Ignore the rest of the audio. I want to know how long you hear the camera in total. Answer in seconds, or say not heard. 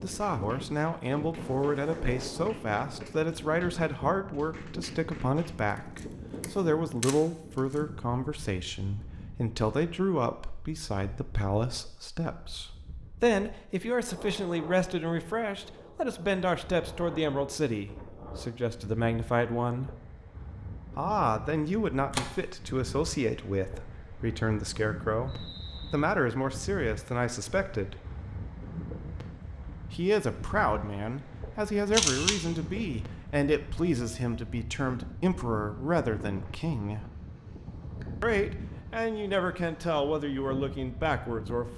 3 s.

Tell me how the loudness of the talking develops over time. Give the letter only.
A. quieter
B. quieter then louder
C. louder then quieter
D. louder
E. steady
E.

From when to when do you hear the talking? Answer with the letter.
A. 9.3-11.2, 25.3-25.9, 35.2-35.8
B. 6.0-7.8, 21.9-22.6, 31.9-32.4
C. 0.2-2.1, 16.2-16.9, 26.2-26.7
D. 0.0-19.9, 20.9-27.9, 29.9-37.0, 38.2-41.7
D.